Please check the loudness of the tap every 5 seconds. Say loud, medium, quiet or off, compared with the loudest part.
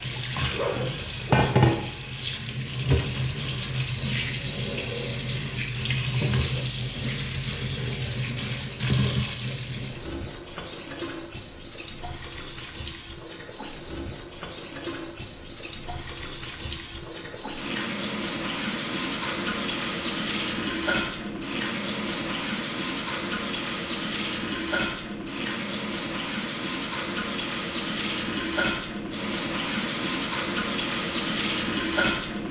loud, loud, medium, medium, loud, loud, loud.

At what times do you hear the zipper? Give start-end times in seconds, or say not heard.
0.5-1.7.